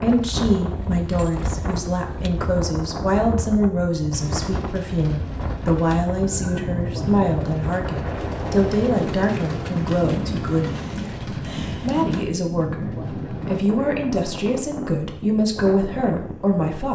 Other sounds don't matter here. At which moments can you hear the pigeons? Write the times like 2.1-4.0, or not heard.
4.1-13.7.